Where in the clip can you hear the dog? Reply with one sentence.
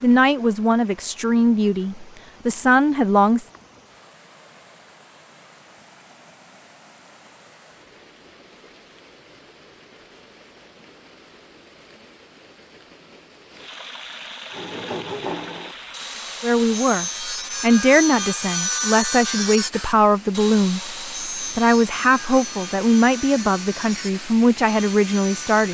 You can't hear the dog here.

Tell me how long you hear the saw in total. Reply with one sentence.
You can hear the saw for 11 seconds altogether.